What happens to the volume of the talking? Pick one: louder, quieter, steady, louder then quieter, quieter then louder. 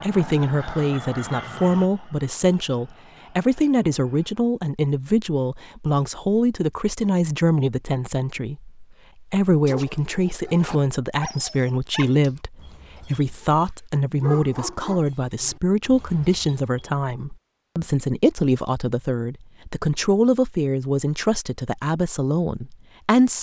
steady.